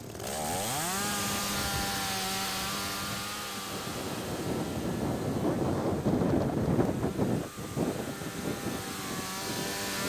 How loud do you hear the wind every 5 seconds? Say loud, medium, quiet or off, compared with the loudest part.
medium, loud.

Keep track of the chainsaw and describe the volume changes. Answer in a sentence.
The loudness of the chainsaw goes down, then up.